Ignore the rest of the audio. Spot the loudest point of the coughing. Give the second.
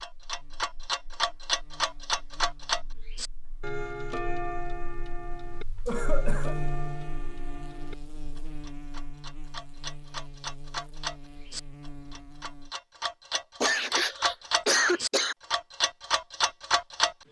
15 s.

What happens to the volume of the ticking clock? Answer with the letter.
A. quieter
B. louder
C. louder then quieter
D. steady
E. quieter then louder
E.